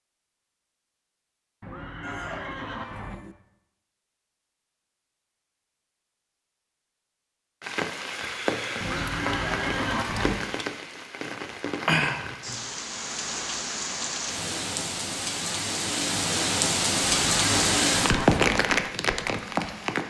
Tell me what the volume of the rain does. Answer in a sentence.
The loudness of the rain goes up.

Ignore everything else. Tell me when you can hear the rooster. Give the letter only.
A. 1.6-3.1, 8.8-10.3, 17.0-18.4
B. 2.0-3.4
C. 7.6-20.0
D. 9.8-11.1
B.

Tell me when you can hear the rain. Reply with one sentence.
You can hear the rain from 7.6 to 20.0 s.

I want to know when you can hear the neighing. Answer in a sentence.
The neighing can be heard from 1.6 to 3.1 s, from 8.8 to 10.3 s and from 17.0 to 18.4 s.